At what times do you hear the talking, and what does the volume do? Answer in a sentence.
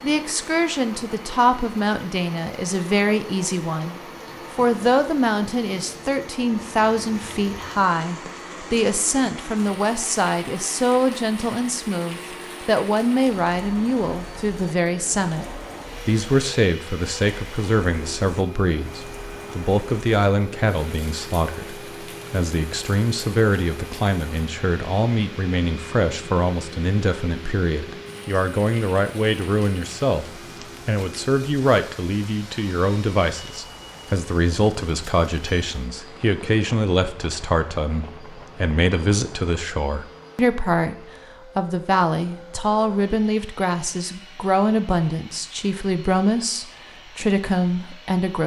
The talking can be heard from 0.0 to 48.4 s, at a steady volume.